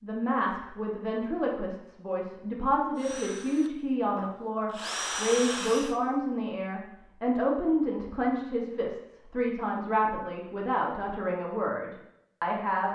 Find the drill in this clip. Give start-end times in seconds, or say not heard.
3.0-6.0.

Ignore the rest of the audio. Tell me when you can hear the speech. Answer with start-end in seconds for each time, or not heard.
0.0-12.8.